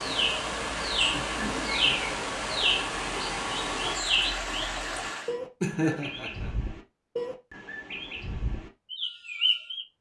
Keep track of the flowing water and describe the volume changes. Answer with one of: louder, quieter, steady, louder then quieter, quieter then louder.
steady.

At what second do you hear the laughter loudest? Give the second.
6 s.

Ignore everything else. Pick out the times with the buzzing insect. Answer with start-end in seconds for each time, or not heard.
not heard.